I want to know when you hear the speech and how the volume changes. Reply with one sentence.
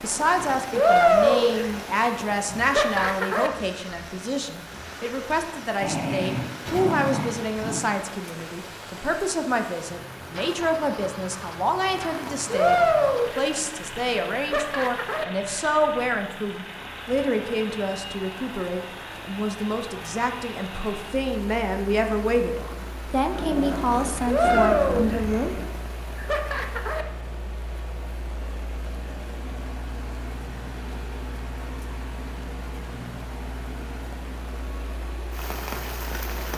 You can hear the speech from 0.0 to 25.6 s, at a steady volume.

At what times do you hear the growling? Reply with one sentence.
The growling can be heard from 5.8 to 7.8 s and from 23.3 to 25.8 s.